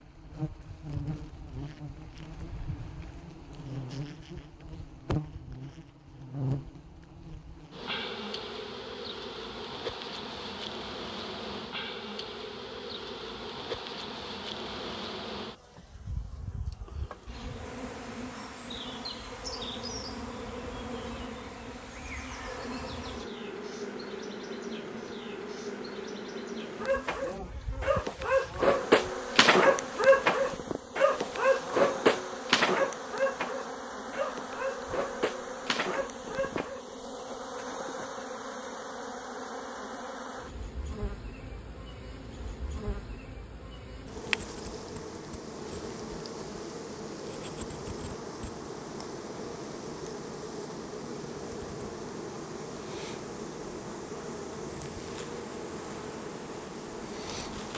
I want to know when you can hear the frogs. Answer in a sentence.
The frogs can't be heard in this clip.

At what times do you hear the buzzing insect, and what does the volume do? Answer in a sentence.
The buzzing insect can be heard from 0.0 to 57.7 s, at a steady volume.